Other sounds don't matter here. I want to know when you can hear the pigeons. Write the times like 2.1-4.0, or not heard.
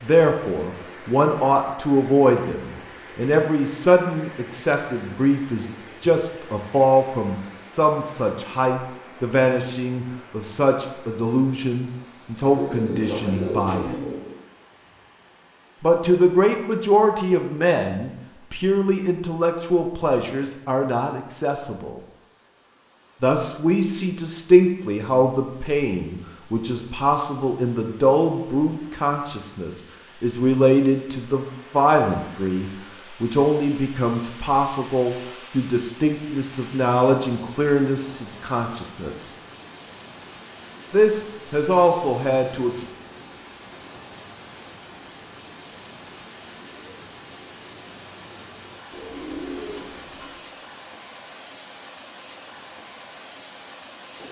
12.4-14.4, 48.9-50.4.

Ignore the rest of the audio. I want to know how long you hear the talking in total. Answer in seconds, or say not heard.
38 s.